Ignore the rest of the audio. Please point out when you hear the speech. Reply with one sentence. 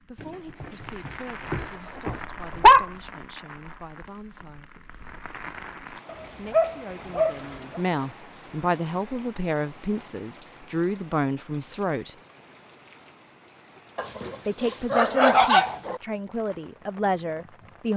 You can hear the speech from 0.1 to 4.8 s, from 6.3 to 12.2 s and from 14.4 to 17.9 s.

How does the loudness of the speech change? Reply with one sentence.
The volume of the speech goes up.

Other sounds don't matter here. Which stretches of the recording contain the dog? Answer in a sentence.
The dog can be heard from 0.2 to 2.9 s, from 6.0 to 7.8 s and from 13.9 to 16.0 s.